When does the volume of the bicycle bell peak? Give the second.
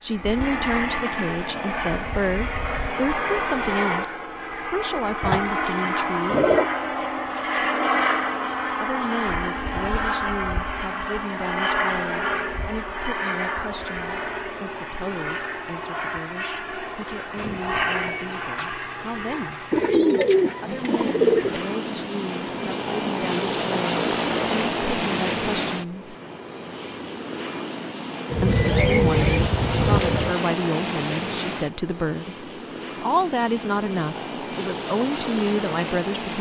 29 s.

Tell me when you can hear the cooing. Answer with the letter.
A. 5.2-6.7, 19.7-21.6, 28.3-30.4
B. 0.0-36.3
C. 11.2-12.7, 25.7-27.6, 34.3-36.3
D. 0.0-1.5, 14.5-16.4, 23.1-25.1
A.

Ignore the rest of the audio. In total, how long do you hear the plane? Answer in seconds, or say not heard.
36 s.